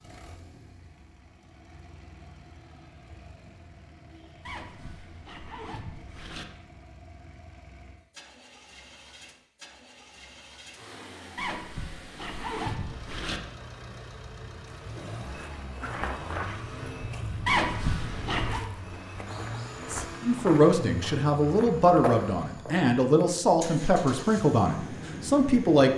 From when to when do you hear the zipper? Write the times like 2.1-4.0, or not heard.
4.5-6.5, 11.3-13.4, 17.4-18.6.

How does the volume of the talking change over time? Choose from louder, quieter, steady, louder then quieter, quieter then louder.
steady.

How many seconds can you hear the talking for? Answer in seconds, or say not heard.
6 s.